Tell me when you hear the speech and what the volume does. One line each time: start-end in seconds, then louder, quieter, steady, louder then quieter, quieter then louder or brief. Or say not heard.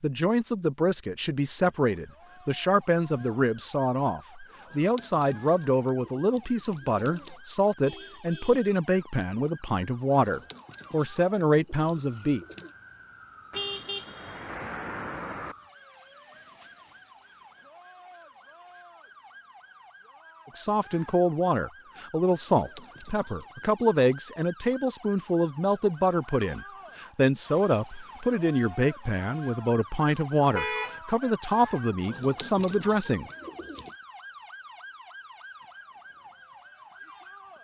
0.0-12.4 steady
20.6-33.2 steady.